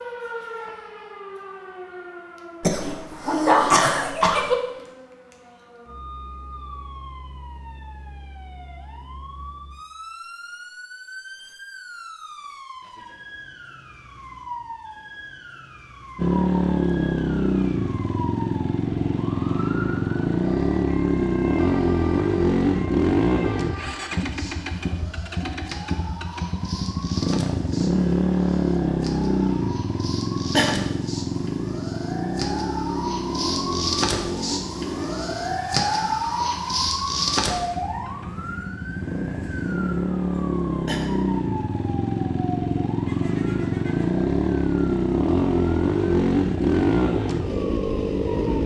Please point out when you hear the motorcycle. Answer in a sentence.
The motorcycle can be heard from 16.1 to 48.6 s.